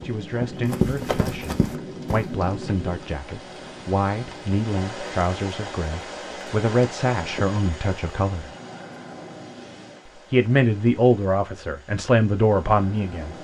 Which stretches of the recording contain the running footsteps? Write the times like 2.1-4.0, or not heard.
0.0-2.2.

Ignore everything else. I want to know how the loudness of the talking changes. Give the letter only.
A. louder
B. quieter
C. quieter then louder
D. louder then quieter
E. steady
A.